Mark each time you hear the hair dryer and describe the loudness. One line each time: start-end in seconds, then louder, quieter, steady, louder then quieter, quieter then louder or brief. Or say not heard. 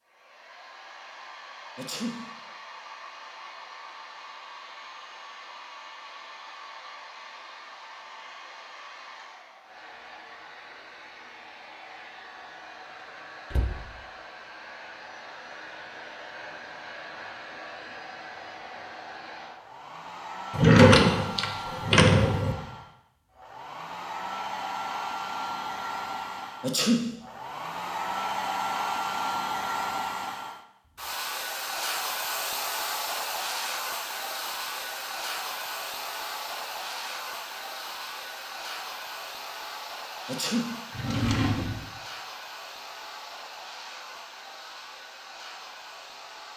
0.0-46.5 louder then quieter.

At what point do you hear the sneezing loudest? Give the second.
27 s.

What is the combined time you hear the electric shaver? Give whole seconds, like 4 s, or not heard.
not heard.